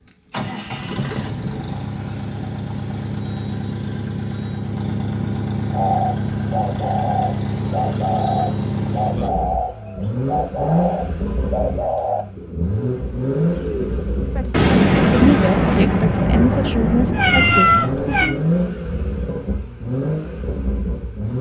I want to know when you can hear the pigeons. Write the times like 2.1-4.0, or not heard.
5.7-14.3.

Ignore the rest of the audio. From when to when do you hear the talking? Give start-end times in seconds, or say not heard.
14.3-18.4.